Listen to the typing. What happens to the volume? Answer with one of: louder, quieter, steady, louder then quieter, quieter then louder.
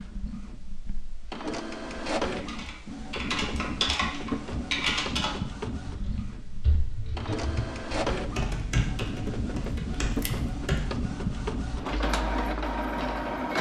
quieter.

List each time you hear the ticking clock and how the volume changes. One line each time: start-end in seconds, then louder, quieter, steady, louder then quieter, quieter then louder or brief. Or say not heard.
not heard.